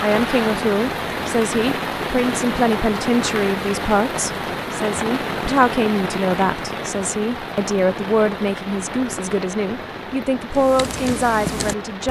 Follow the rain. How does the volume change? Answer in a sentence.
The loudness of the rain goes down.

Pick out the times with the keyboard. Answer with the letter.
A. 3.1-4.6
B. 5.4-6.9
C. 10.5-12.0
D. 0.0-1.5
C.